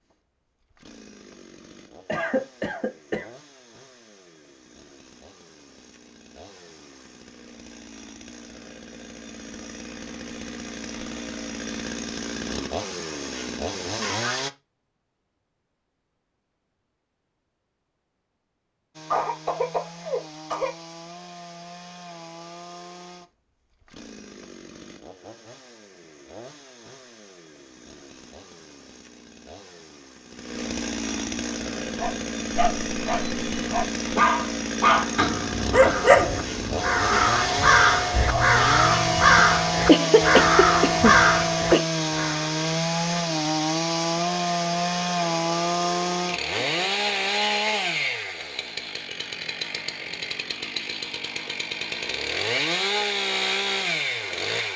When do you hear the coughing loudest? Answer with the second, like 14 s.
40 s.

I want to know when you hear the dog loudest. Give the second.
36 s.